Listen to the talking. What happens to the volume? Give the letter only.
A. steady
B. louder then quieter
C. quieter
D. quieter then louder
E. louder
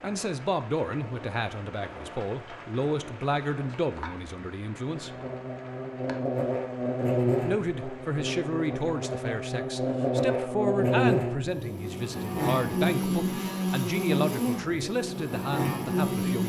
A.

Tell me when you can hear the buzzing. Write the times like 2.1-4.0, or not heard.
4.7-16.4.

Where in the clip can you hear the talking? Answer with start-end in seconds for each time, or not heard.
0.0-5.1, 7.4-16.4.